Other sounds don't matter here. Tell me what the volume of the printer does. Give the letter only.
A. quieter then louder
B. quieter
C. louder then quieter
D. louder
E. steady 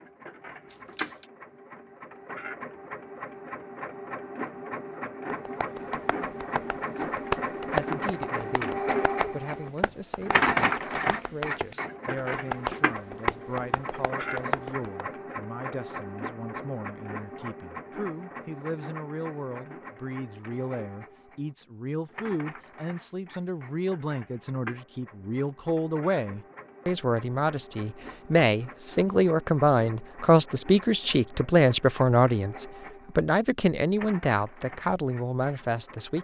C.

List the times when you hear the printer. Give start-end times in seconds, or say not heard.
0.0-36.1.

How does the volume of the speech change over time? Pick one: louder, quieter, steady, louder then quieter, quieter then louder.
louder.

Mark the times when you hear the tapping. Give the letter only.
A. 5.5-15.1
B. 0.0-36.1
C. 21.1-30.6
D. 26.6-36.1
A.